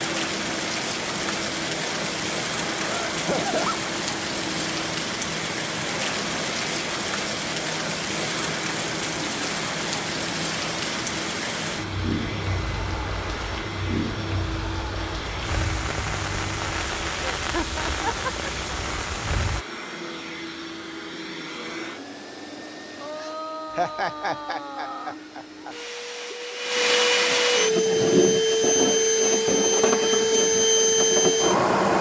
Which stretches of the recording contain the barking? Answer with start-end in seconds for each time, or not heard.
not heard.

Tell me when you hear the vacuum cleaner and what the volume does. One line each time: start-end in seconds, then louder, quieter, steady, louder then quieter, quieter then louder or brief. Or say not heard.
0.0-31.9 louder.